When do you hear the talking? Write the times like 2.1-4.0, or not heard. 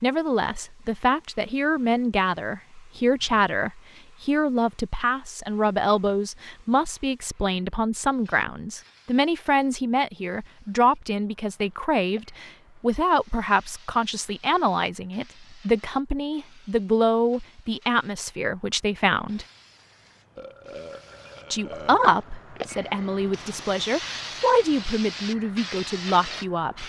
0.0-19.4, 21.5-26.8.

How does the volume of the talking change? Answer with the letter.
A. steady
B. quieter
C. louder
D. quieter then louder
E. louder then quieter
A.